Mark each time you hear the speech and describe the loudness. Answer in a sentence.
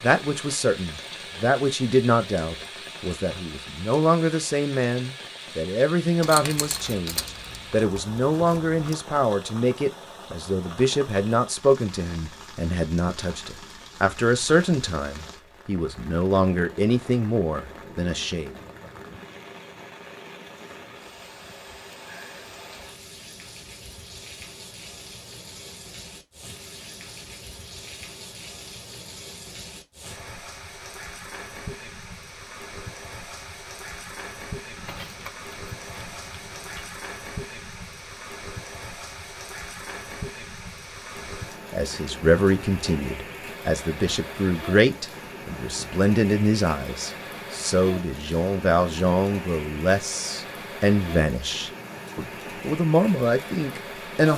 The speech can be heard from 0.0 to 18.5 s, at a steady volume; and from 41.7 to 54.3 s, at a steady volume.